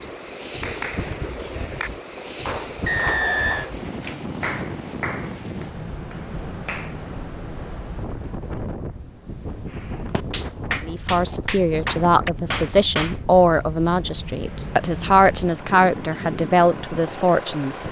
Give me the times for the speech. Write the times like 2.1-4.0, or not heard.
10.8-17.8.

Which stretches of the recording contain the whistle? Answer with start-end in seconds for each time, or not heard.
2.9-3.7.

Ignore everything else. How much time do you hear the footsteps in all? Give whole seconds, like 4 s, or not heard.
not heard.